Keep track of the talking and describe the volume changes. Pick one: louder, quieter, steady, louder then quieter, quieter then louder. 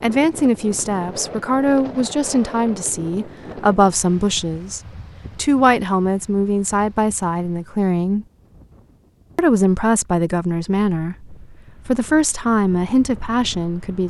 steady.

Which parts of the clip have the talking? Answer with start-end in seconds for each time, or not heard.
0.0-8.2, 9.3-14.0.